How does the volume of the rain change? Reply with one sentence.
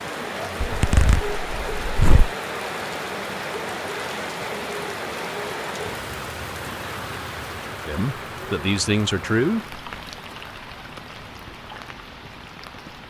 The volume of the rain goes down.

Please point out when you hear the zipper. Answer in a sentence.
You can hear the zipper from 0.6 to 2.3 s.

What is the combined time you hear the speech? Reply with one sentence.
The speech can be heard for 2 seconds in total.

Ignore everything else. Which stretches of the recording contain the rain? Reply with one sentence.
The rain can be heard from 0.0 to 13.0 s.